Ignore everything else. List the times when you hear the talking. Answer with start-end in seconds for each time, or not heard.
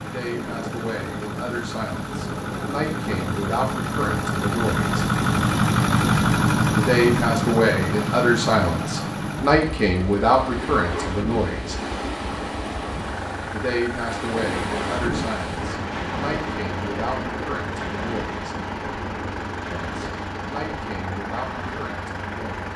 0.0-5.0, 6.8-11.8, 13.5-18.6, 19.8-22.7.